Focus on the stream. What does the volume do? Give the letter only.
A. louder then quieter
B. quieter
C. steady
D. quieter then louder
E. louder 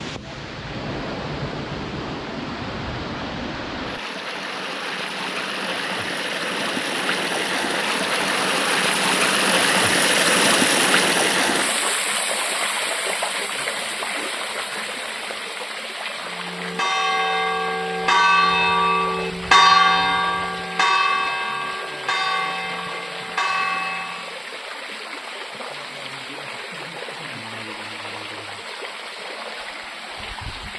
A.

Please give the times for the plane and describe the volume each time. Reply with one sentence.
You can't hear the plane here.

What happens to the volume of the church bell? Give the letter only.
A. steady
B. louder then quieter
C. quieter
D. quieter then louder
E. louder
B.